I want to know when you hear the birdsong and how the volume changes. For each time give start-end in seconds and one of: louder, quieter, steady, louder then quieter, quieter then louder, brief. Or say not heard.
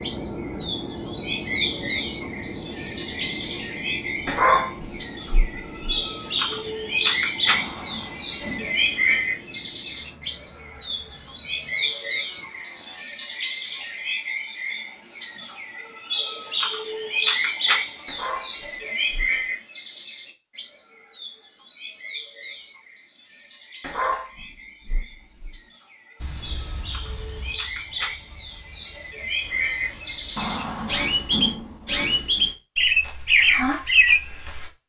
0.0-34.7 quieter then louder.